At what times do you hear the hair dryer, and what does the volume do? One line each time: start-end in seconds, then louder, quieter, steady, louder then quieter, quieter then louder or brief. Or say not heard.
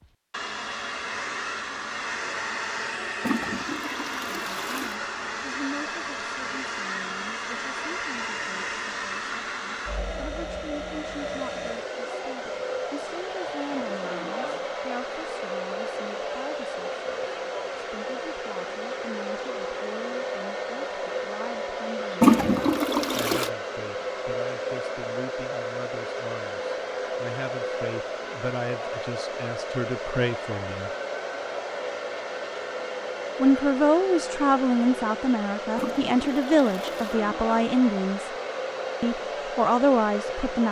0.0-40.6 steady.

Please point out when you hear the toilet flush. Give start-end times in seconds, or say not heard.
3.2-5.0, 22.2-23.5, 35.8-37.1.